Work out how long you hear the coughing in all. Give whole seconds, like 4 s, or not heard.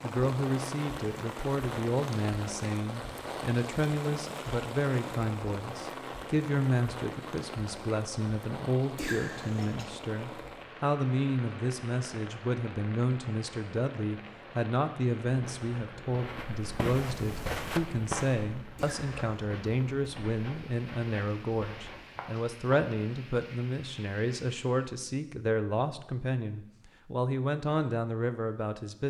2 s.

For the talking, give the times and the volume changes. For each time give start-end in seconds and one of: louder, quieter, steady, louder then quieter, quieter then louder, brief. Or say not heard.
0.0-29.0 steady.